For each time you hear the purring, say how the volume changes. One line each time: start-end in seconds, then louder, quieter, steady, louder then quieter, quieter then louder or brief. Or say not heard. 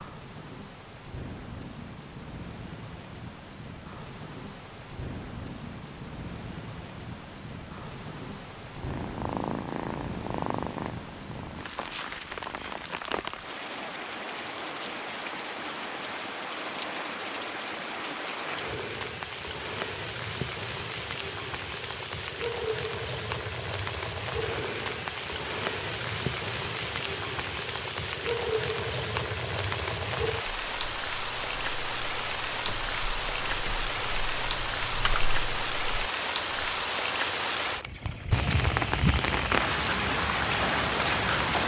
8.8-13.2 quieter.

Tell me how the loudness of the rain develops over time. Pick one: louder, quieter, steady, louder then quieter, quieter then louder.
louder.